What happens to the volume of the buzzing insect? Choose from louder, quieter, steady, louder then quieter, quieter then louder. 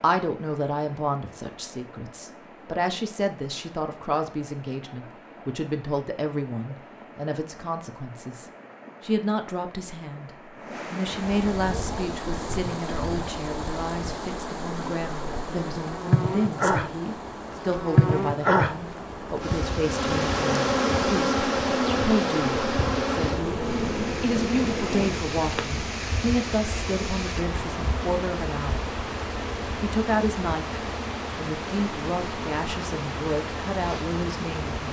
louder then quieter.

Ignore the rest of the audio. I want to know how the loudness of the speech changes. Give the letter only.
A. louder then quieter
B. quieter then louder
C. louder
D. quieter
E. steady
E.